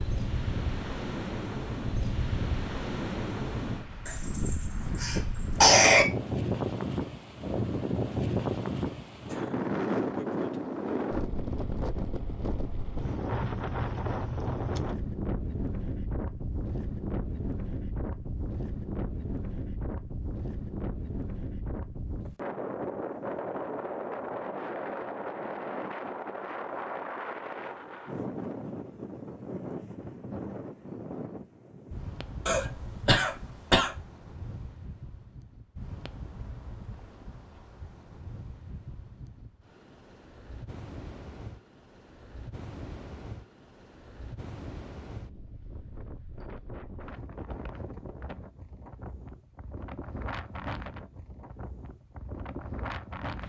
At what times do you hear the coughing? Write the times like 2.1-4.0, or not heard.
4.0-6.0, 32.5-33.9.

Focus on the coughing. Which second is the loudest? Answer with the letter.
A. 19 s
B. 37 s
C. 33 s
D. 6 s
D.